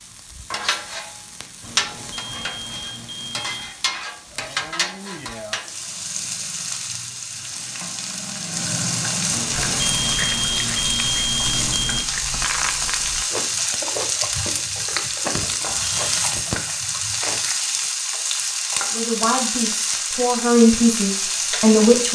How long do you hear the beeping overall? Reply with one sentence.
You can hear the beeping for 6 seconds altogether.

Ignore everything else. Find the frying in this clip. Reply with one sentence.
The frying can be heard from 0.0 to 22.1 s.